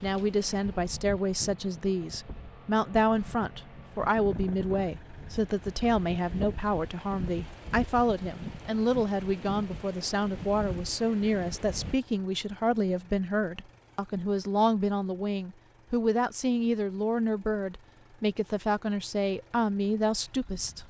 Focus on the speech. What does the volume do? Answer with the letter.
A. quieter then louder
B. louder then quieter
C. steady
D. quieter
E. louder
C.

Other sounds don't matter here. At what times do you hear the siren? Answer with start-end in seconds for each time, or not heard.
not heard.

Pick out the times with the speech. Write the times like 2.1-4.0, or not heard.
0.0-20.8.